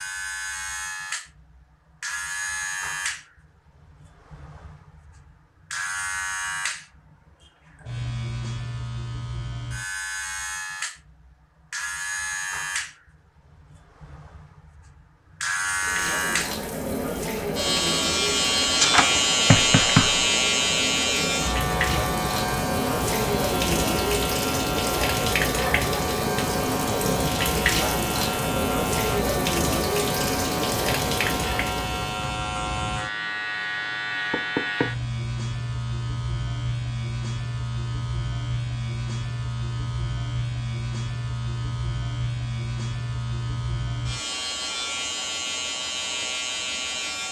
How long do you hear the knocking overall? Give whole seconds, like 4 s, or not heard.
2 s.